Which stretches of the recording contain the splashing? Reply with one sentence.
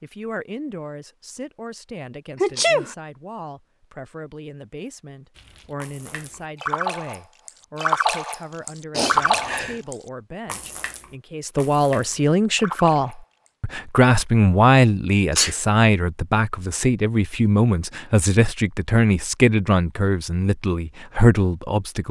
You can hear the splashing from 5.3 to 13.5 s.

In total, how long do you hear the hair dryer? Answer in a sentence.
You can't hear the hair dryer here.